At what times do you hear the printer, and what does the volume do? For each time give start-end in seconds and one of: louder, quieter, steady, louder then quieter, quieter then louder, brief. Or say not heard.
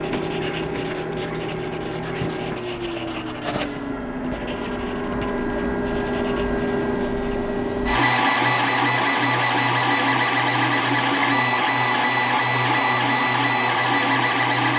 0.0-14.7 louder.